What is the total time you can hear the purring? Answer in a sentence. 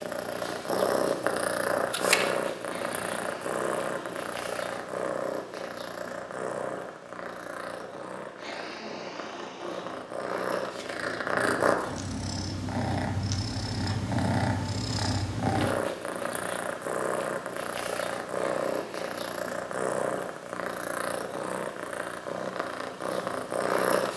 You can hear the purring for 24 seconds altogether.